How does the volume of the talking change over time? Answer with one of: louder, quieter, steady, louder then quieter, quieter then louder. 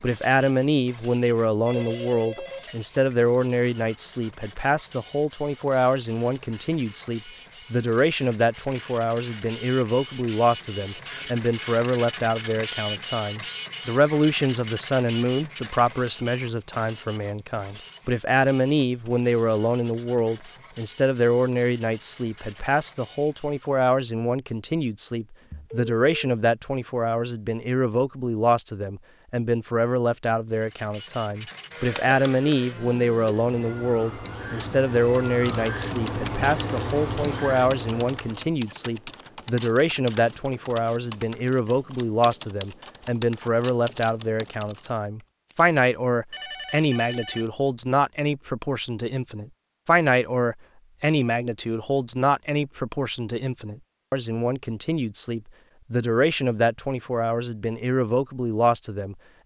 steady.